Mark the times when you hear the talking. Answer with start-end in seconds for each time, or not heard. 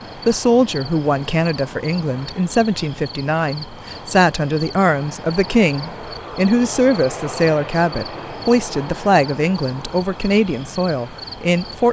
0.2-11.8.